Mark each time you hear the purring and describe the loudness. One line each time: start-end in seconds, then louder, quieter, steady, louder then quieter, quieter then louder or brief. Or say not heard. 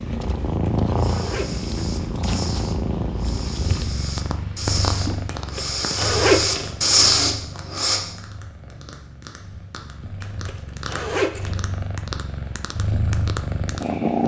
0.0-14.2 quieter then louder.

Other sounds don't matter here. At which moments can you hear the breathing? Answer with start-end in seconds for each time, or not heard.
0.9-8.0.